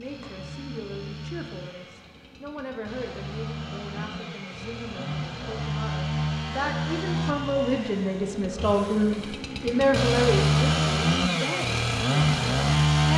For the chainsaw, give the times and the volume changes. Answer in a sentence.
You can hear the chainsaw from 0.0 to 13.1 s, getting louder.